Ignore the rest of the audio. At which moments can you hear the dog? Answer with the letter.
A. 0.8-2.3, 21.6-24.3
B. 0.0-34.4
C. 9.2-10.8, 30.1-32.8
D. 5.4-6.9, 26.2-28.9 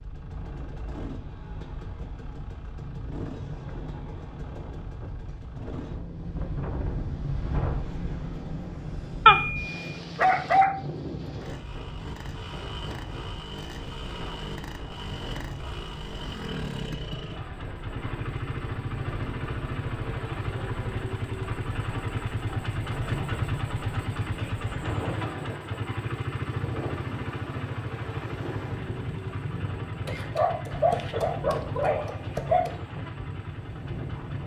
C.